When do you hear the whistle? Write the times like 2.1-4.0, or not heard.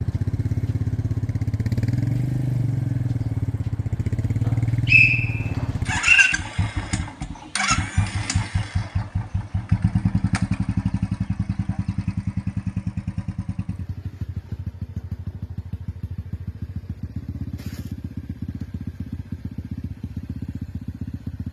4.5-6.3.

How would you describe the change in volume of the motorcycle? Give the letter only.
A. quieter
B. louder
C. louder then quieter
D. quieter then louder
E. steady
A.